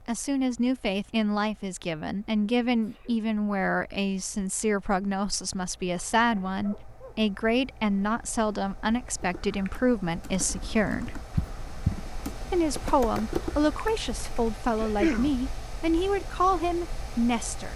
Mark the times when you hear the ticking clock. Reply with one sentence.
The ticking clock can't be heard in this clip.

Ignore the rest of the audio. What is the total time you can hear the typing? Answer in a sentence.
You can hear the typing for 5 seconds altogether.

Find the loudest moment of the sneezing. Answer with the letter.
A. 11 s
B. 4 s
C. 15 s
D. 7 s
C.